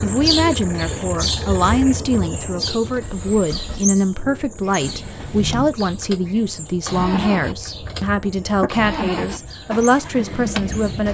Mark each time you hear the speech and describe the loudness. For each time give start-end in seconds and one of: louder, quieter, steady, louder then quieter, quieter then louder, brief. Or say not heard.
0.0-11.1 steady.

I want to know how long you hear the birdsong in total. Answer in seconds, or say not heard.
11 s.